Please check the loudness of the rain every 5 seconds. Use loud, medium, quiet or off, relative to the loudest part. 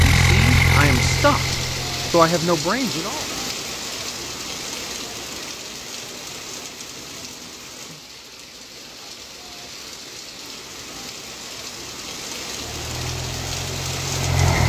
loud, medium, loud.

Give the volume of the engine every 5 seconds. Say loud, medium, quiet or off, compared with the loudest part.
loud, off, medium.